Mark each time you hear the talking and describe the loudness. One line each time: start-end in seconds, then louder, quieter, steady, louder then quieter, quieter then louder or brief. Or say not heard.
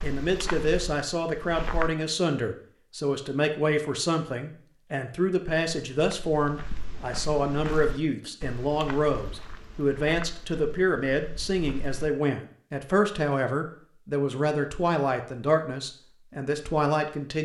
0.0-17.4 steady.